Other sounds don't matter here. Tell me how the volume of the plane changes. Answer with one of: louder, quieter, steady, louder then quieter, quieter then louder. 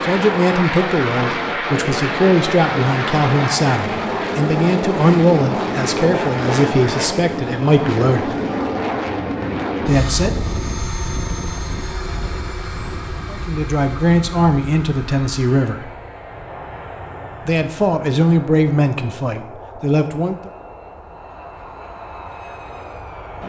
quieter.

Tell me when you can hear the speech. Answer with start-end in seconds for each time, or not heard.
0.0-8.3, 9.8-10.3, 13.3-15.9, 17.4-20.5.